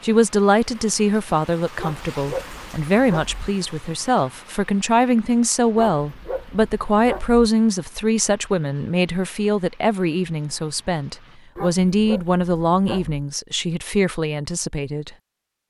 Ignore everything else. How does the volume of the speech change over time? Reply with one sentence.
The loudness of the speech stays about the same.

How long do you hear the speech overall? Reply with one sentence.
You can hear the speech for 15 seconds altogether.